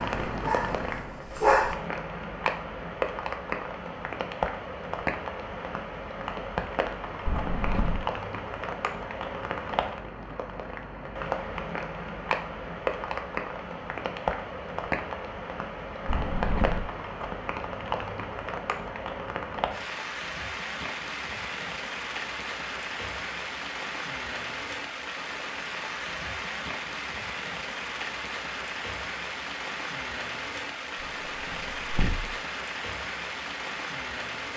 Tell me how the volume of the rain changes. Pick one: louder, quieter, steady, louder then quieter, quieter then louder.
steady.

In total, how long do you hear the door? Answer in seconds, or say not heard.
3 s.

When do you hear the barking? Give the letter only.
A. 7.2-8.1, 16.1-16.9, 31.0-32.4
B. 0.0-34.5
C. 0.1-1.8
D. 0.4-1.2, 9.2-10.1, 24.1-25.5
C.